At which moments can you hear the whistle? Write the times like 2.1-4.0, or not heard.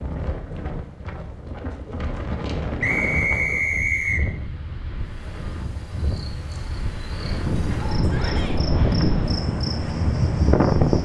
2.8-4.2.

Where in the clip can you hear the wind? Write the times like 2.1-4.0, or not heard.
0.0-11.0.